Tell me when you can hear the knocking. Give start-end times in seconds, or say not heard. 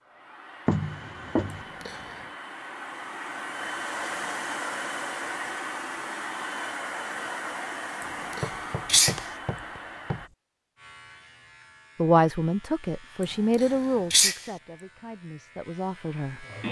0.7-1.6, 8.4-10.2.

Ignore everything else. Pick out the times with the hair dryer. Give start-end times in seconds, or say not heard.
0.0-10.3.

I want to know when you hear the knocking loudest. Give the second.
1 s.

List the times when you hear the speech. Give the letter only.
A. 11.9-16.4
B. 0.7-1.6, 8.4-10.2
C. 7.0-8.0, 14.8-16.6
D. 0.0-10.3
A.